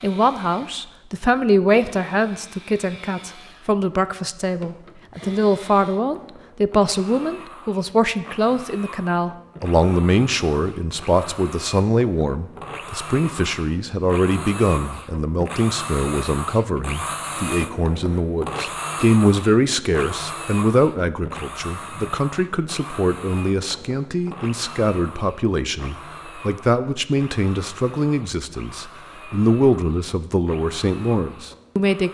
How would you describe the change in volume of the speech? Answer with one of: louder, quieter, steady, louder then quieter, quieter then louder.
steady.